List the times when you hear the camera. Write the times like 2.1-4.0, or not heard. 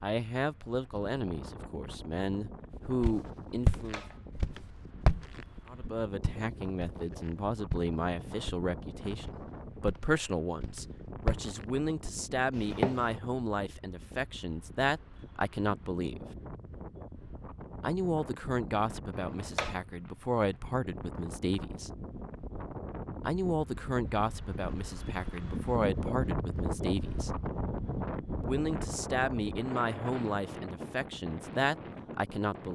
3.7-4.5, 19.1-19.8.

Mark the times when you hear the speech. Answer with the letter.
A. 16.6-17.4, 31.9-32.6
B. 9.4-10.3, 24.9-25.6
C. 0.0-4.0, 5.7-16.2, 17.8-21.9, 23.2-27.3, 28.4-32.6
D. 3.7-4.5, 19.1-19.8
C.